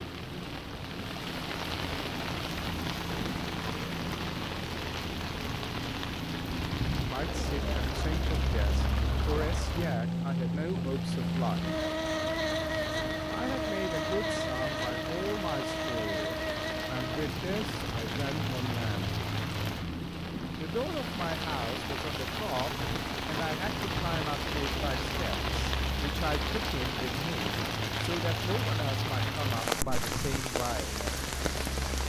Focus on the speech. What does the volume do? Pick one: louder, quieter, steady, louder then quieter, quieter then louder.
steady.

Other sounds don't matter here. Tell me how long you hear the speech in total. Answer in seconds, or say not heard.
21 s.